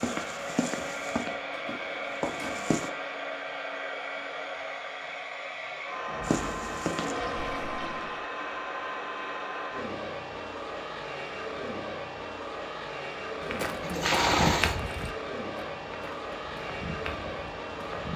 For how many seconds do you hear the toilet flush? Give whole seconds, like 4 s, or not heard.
5 s.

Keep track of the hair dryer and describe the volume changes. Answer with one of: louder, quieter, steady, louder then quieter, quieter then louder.
steady.